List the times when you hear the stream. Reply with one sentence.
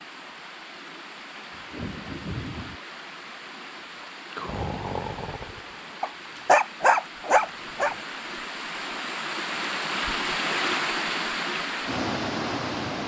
You can hear the stream from 0.0 to 13.0 s.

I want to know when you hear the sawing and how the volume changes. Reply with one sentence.
The sawing can't be heard in this clip.